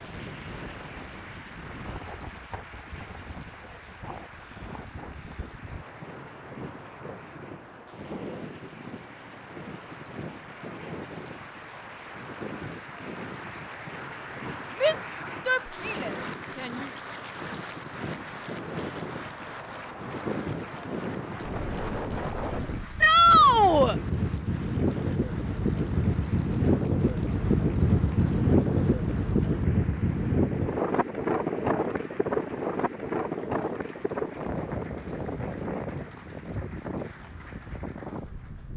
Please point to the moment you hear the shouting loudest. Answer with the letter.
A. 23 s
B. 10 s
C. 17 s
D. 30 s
A.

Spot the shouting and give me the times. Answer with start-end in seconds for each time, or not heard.
14.8-16.9, 23.0-23.9.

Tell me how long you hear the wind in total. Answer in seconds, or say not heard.
39 s.